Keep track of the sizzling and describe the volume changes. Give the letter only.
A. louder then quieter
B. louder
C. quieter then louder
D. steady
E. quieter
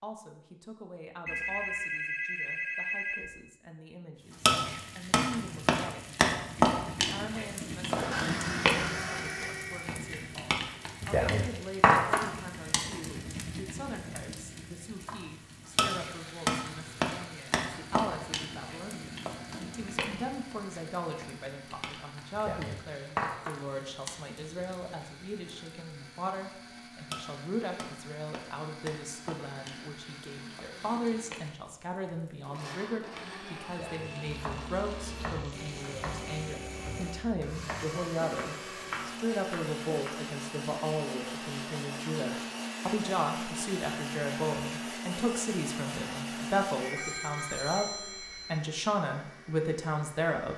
E.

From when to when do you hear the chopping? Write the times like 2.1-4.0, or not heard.
34.2-40.1.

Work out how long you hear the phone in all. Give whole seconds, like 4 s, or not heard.
4 s.